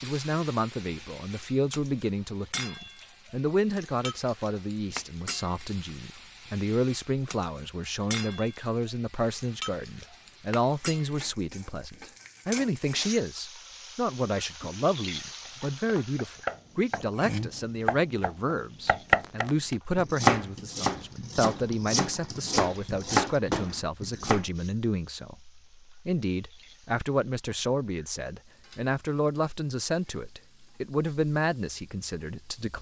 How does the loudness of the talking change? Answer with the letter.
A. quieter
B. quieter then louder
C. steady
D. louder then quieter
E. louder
C.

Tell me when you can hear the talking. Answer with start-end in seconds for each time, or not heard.
0.0-32.7.